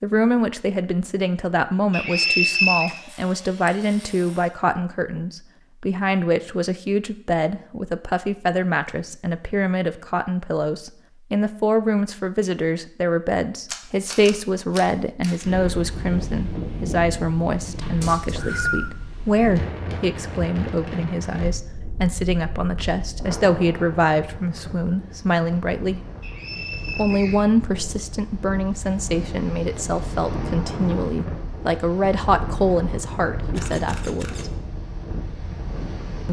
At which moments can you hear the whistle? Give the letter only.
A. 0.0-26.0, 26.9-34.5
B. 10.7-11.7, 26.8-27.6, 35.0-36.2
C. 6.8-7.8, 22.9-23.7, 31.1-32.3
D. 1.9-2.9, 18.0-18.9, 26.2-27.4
D.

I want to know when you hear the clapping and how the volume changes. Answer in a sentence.
The clapping can't be heard in this clip.